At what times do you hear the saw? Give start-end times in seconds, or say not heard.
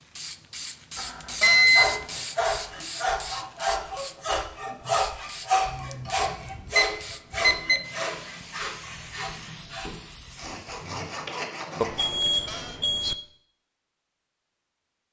1.7-12.4.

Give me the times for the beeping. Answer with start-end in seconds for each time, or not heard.
0.9-1.9, 5.7-7.8, 11.8-13.2.